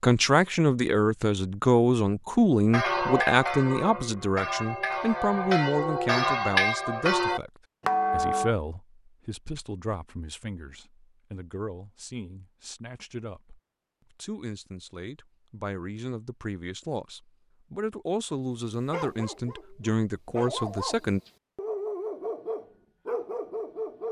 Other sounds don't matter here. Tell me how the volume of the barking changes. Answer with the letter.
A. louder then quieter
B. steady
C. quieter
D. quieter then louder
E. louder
E.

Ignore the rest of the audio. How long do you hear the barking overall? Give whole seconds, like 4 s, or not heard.
5 s.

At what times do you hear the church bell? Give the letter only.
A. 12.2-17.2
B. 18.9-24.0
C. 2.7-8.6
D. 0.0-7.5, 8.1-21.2
C.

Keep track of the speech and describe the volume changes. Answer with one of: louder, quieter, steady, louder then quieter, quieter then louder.
quieter then louder.